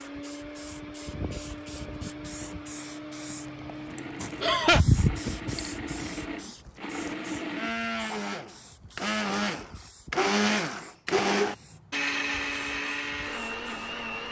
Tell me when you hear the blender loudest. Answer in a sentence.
The loudest moment of the blender is at 11 seconds.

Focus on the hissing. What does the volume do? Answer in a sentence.
The loudness of the hissing goes up, then down.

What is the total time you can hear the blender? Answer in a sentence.
The blender can be heard for 14 seconds in total.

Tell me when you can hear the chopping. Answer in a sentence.
You can't hear the chopping here.